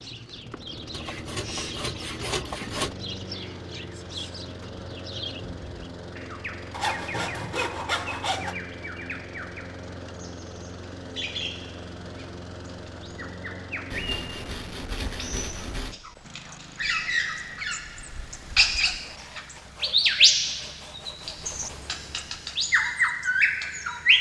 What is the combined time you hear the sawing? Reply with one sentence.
The sawing can be heard for 9 seconds in total.